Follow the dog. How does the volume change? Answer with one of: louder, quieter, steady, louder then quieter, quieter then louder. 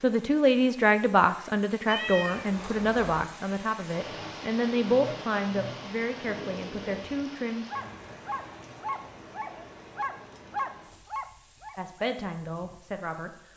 louder.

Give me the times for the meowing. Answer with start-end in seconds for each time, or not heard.
1.9-3.2.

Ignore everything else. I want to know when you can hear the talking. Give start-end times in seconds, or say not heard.
0.0-7.7, 11.8-13.3.